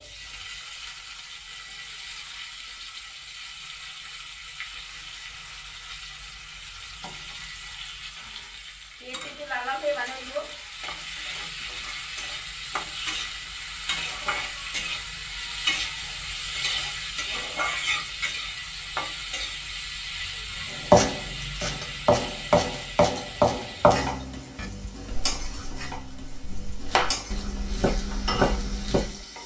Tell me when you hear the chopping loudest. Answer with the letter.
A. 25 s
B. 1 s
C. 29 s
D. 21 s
D.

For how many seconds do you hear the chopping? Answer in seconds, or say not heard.
8 s.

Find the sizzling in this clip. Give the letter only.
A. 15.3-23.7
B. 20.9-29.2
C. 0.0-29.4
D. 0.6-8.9
C.